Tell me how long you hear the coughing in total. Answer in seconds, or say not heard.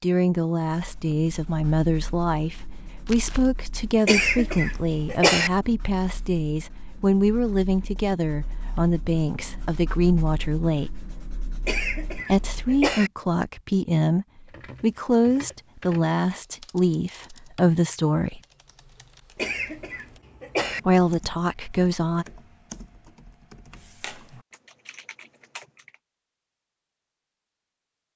4 s.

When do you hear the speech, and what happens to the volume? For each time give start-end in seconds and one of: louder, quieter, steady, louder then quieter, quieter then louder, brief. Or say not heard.
0.0-10.9 steady
12.2-18.4 steady
20.9-22.2 brief.